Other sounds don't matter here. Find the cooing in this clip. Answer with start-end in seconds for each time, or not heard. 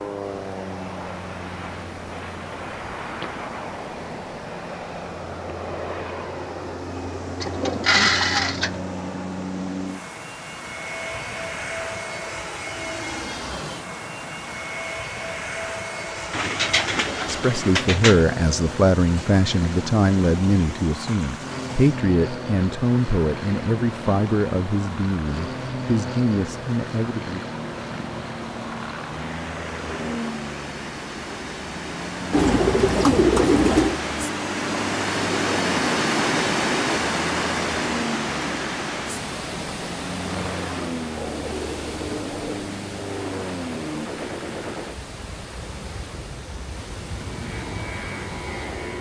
7.4-8.8, 16.3-18.2, 32.3-34.0, 41.1-42.7.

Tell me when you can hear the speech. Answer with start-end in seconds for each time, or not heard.
17.2-27.4.